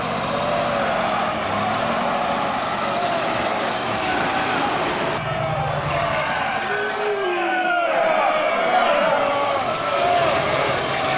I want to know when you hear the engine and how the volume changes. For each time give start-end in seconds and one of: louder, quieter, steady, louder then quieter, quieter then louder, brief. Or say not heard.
0.0-11.1 quieter then louder.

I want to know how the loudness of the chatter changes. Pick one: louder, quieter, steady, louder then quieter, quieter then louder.
louder.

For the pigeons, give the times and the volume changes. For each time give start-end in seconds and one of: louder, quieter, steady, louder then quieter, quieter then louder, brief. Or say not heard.
not heard.